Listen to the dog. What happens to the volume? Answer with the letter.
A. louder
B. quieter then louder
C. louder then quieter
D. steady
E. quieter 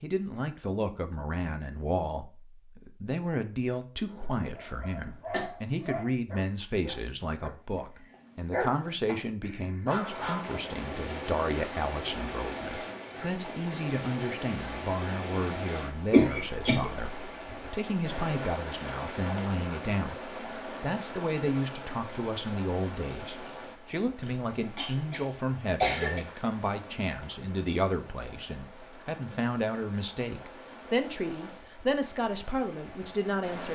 B.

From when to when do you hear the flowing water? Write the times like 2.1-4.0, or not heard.
9.9-33.7.